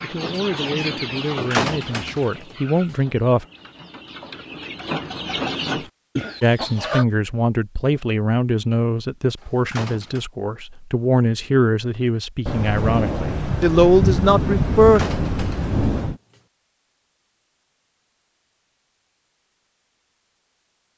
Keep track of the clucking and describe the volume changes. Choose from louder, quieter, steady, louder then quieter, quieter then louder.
quieter then louder.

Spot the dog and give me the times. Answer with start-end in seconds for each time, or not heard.
not heard.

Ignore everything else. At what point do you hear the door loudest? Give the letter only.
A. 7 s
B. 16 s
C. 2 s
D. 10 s
C.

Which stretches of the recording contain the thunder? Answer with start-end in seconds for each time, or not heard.
12.4-16.2.